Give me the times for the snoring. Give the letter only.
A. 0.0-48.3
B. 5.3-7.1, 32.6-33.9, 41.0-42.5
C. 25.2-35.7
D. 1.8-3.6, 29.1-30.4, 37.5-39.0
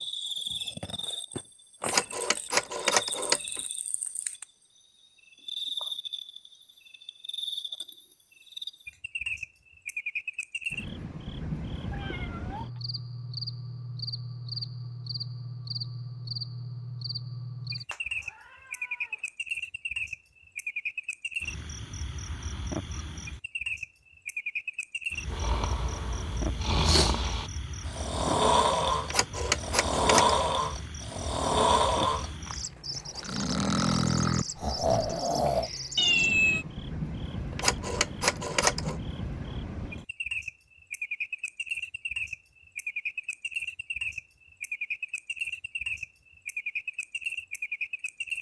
C.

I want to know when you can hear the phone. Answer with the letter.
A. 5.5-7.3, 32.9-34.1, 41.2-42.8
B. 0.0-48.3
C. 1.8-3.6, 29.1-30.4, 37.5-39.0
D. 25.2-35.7
C.